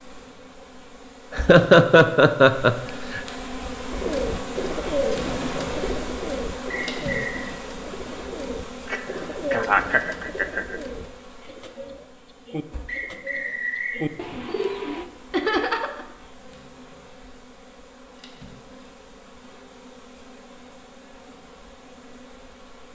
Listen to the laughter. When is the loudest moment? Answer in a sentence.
The volume of the laughter peaks at 2 seconds.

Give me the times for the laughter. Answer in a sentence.
You can hear the laughter from 1.3 to 3.2 s, from 8.9 to 10.8 s and from 15.3 to 16.1 s.